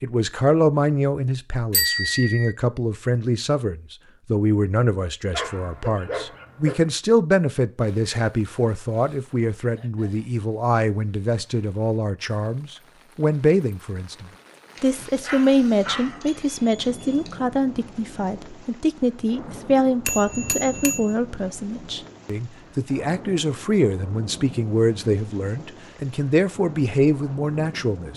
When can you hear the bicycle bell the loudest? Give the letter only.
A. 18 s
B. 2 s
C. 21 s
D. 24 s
B.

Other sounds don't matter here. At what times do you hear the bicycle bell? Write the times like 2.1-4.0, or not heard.
1.7-2.5, 20.1-21.1.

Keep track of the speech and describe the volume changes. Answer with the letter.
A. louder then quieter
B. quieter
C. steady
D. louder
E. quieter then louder
C.